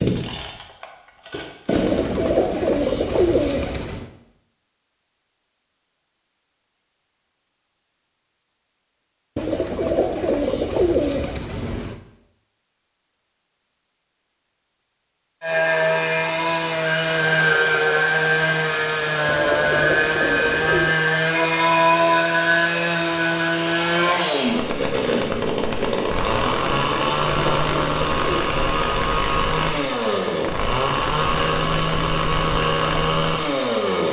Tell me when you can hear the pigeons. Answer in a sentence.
The pigeons can be heard from 1.8 to 4.1 s, from 9.3 to 11.9 s, from 19.2 to 20.9 s and from 26.9 to 28.4 s.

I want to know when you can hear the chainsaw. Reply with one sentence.
The chainsaw can be heard from 0.0 to 3.9 s and from 15.4 to 34.0 s.